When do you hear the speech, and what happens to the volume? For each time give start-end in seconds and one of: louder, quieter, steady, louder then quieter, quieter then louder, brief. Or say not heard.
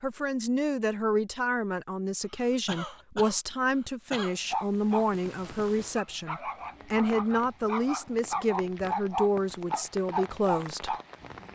0.0-10.9 steady.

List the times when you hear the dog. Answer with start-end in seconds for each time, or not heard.
4.3-11.4.